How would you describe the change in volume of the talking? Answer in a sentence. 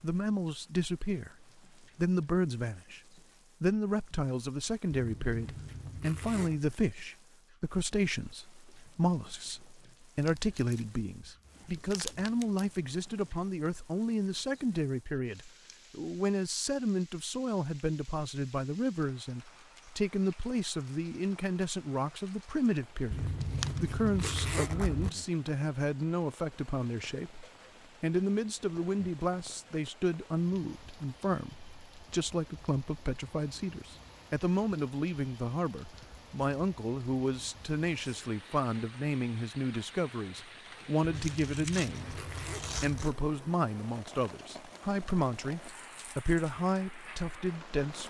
The loudness of the talking stays about the same.